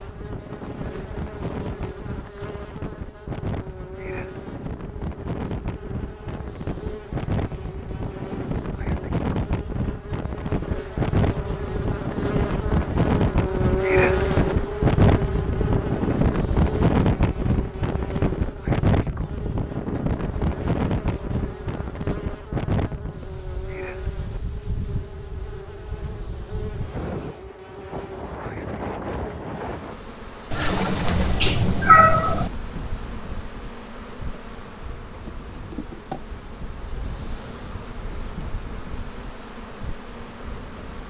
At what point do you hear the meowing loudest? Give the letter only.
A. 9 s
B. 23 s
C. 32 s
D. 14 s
C.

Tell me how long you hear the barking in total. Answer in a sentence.
The barking can't be heard in this clip.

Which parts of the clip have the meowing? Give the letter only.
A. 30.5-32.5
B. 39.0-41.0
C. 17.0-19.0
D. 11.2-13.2
A.